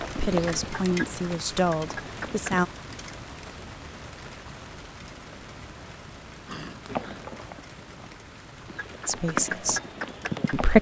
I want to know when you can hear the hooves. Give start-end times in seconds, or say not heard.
0.0-2.6, 6.8-10.7.